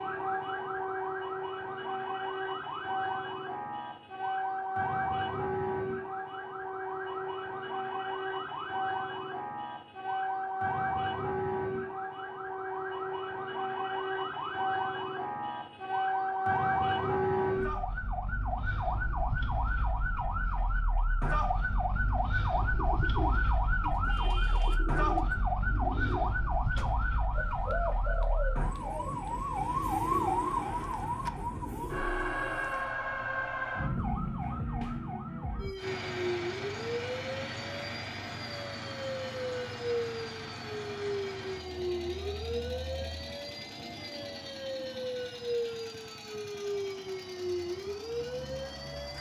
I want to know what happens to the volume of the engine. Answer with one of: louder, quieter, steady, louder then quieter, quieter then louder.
quieter.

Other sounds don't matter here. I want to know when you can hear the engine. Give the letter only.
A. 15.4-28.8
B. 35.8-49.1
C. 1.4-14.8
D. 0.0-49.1
B.